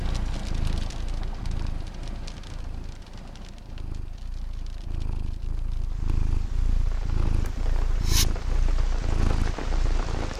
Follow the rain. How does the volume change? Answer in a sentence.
The loudness of the rain goes down, then up.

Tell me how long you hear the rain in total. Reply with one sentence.
You can hear the rain for 10 seconds altogether.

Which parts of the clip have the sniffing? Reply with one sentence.
The sniffing can be heard from 7.5 to 8.2 s.